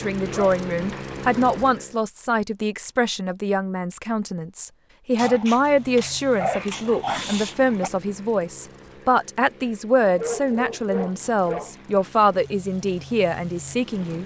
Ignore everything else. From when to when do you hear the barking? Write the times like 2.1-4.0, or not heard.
0.3-1.1, 5.2-7.9, 10.1-11.8.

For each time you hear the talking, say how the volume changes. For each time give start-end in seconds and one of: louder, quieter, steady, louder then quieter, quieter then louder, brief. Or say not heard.
0.0-14.2 steady.